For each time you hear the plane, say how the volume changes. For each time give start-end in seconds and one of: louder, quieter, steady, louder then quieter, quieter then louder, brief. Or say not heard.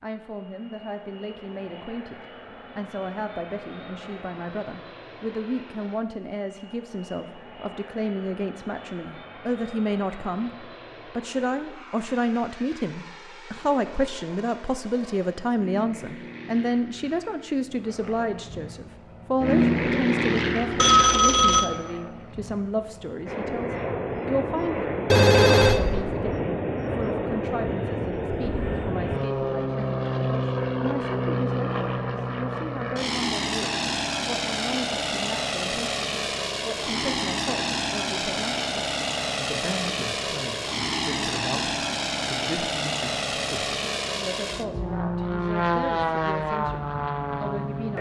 0.1-47.9 louder.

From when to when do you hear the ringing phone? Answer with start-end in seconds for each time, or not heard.
20.8-21.6, 25.1-25.8.